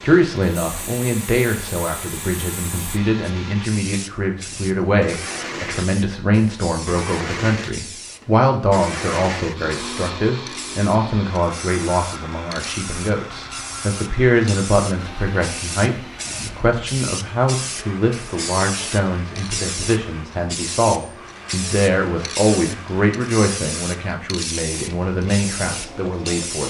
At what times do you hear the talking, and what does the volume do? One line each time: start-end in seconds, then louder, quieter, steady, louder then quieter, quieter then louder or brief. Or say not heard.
0.0-26.6 steady.